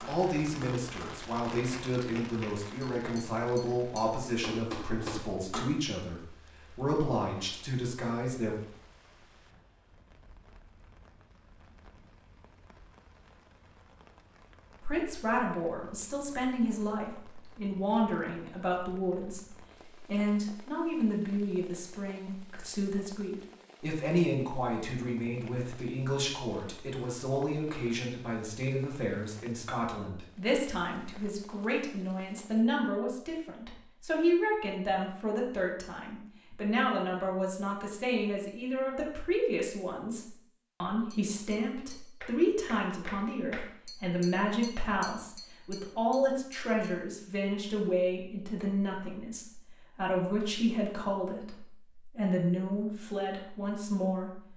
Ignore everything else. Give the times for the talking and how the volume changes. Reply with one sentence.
The talking can be heard from 0.1 to 8.6 s, at a steady volume; and from 14.8 to 54.5 s, at a steady volume.